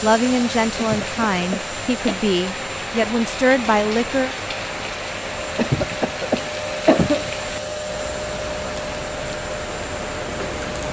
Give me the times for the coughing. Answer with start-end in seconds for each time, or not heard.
0.8-2.2, 5.5-7.5.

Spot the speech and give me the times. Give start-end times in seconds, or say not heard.
0.0-4.3.